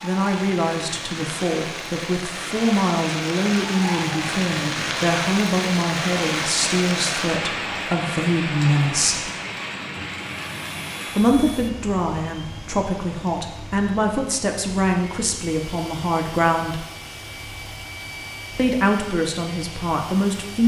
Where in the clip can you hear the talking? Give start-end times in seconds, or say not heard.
0.0-9.3, 11.2-16.9, 18.6-20.6.